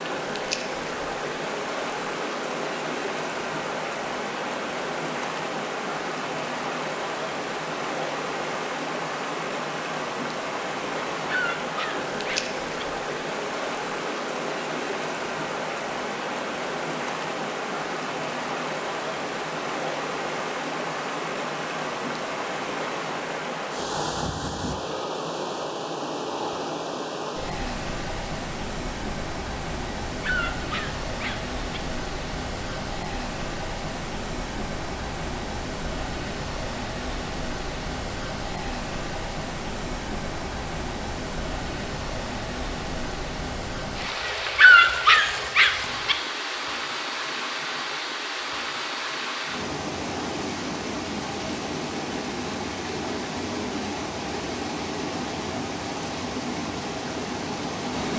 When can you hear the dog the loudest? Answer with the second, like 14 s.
45 s.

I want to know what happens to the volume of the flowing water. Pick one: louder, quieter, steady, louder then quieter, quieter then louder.
steady.